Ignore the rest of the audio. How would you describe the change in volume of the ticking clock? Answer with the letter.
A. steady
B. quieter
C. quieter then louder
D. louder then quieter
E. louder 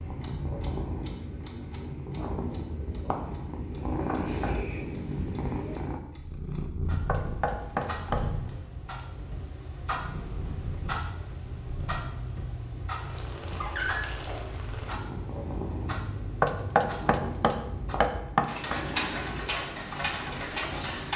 E.